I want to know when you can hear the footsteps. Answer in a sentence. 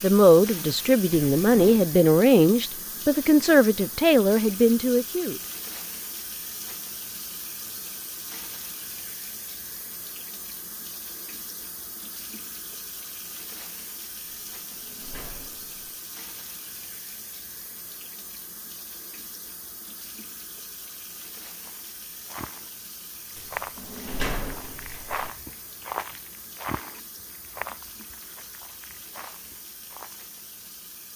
You can hear the footsteps from 21.6 to 30.4 s.